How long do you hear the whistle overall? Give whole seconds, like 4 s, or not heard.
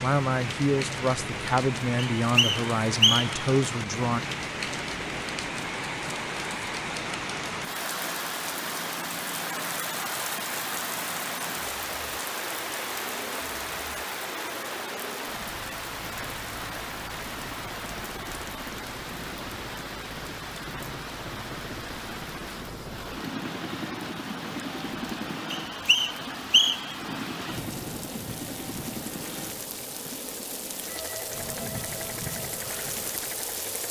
3 s.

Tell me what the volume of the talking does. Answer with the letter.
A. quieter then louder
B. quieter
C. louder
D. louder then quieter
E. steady
E.